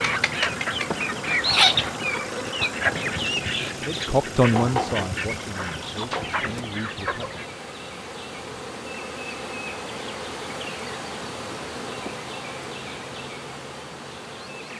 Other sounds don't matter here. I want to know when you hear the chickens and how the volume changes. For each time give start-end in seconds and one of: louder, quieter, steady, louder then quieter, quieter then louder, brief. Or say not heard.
0.0-7.5 quieter.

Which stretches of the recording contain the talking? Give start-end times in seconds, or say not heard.
3.7-7.5.